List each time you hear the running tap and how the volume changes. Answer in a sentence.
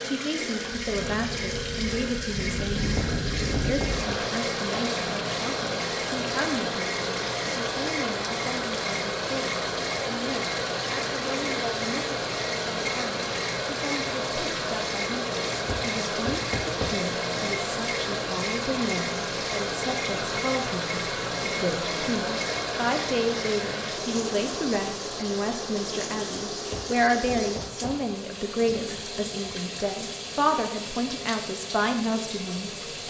You can hear the running tap from 0.0 to 33.0 s, at a steady volume.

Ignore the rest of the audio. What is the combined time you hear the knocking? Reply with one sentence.
You can hear the knocking for 4 seconds altogether.